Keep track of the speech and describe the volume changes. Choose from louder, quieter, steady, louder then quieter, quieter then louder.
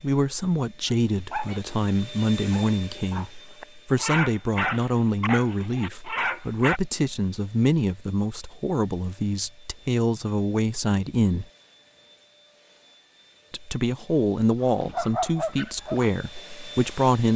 steady.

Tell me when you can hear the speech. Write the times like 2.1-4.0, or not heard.
0.0-11.4, 13.5-17.3.